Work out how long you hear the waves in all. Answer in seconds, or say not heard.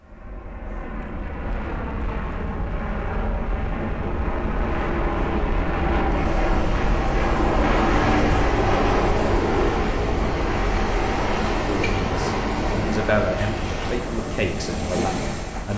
10 s.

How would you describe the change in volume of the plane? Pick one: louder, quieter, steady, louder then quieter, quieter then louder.
louder then quieter.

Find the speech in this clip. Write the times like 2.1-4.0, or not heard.
11.7-15.7.